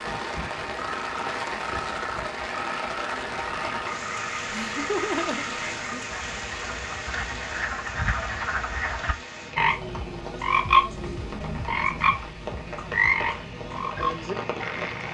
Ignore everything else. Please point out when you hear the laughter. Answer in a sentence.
The laughter can be heard from 4.5 to 6.0 s.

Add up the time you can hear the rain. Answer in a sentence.
The rain can be heard for 15 seconds in total.